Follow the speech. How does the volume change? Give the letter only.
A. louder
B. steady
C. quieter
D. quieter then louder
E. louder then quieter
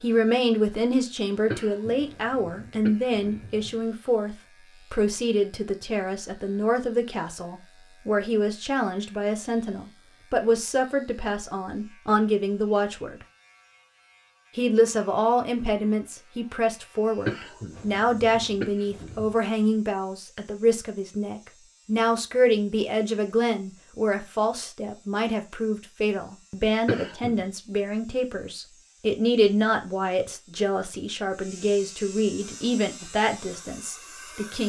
B.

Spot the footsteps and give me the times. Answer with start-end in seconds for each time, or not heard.
not heard.